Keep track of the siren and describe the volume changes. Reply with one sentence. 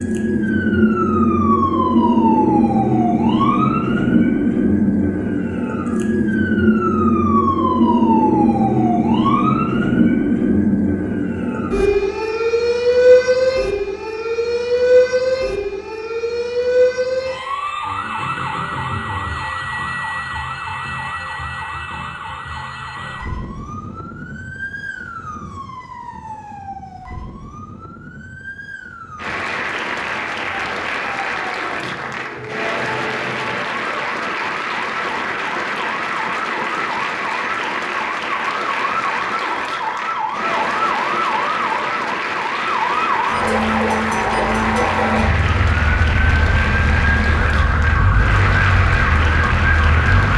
The volume of the siren goes down, then up.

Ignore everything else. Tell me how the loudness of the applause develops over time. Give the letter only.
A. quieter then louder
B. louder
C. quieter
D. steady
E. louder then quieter
D.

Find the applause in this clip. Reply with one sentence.
The applause can be heard from 29.1 to 50.3 s.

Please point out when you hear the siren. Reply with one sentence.
The siren can be heard from 0.0 to 50.3 s.